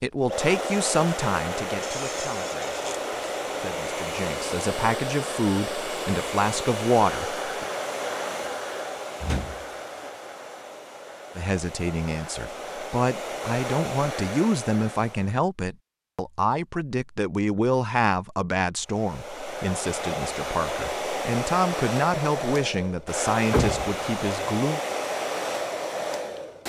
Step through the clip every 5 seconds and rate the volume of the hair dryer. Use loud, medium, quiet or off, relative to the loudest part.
loud, loud, medium, medium, loud, loud.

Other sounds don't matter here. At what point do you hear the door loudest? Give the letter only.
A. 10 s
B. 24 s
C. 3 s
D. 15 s
B.